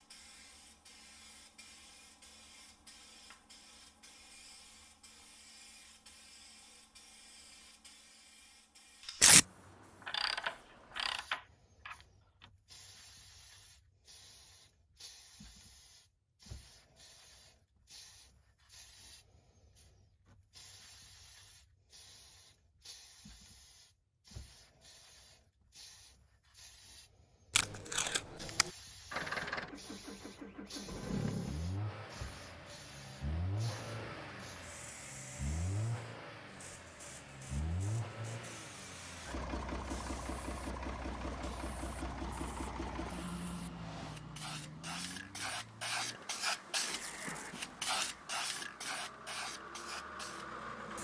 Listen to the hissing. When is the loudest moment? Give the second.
46 s.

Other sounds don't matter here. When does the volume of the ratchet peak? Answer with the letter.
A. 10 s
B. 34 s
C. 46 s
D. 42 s
A.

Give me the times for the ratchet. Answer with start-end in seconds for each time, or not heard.
10.0-12.4.